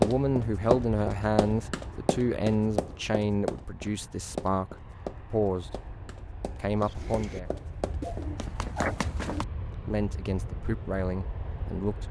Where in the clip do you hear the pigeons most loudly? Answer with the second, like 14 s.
9 s.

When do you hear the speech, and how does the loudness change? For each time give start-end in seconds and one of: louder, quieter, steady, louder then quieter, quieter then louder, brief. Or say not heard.
0.0-6.0 quieter then louder
6.6-7.5 brief
9.8-12.0 brief.